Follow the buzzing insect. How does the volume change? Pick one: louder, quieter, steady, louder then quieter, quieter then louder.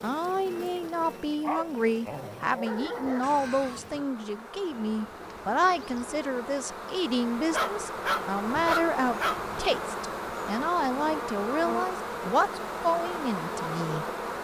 louder.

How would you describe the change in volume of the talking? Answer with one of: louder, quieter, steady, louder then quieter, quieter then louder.
steady.